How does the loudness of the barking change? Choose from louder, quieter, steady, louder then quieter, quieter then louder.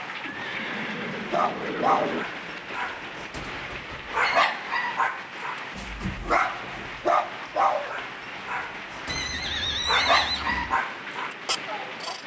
quieter then louder.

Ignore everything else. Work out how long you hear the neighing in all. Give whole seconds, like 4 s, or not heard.
4 s.